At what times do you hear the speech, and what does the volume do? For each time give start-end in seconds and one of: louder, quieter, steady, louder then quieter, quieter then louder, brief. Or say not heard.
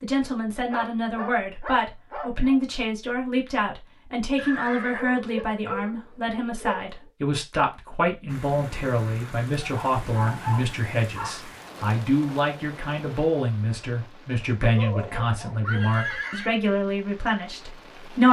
0.0-18.2 steady.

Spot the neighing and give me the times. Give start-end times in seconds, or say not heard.
4.3-5.0, 14.3-16.6.